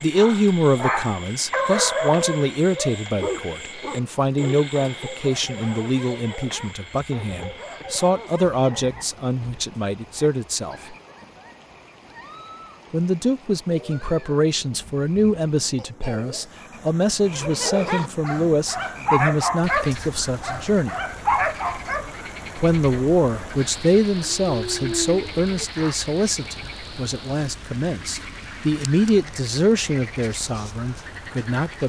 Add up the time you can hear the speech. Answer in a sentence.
You can hear the speech for 28 seconds altogether.